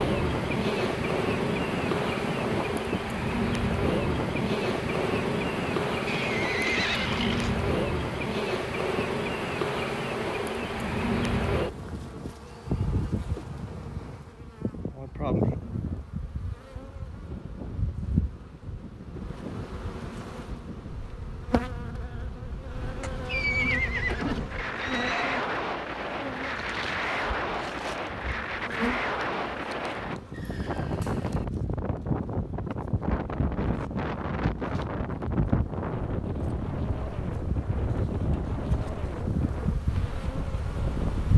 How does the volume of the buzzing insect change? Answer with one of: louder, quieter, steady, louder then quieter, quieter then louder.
quieter.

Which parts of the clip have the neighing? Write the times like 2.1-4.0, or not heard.
6.0-7.7, 23.0-25.4, 30.3-31.4.